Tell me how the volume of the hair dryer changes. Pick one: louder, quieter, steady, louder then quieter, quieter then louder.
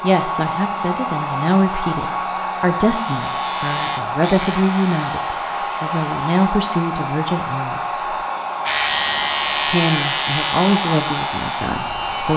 steady.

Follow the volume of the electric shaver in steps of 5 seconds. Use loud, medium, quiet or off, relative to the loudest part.
medium, loud, loud.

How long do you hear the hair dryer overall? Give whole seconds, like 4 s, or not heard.
12 s.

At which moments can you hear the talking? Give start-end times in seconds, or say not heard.
0.0-8.2, 9.7-12.3.